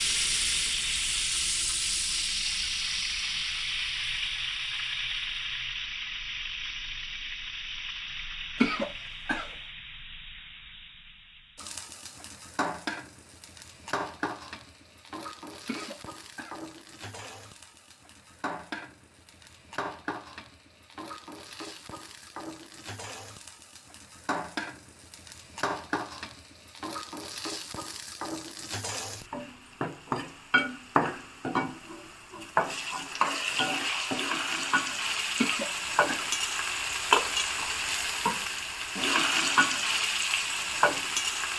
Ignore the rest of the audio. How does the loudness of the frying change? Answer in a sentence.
The volume of the frying goes down, then up.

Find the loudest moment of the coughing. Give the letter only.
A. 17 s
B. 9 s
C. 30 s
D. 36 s
B.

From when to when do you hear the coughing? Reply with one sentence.
The coughing can be heard from 8.6 to 9.5 s, from 15.7 to 16.6 s and from 35.4 to 36.3 s.